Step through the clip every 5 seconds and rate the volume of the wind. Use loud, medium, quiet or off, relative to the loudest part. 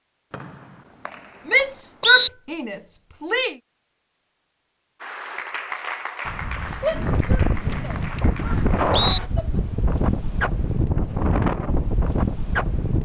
off, loud, loud.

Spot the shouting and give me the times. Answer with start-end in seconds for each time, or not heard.
1.4-3.5, 6.8-9.5.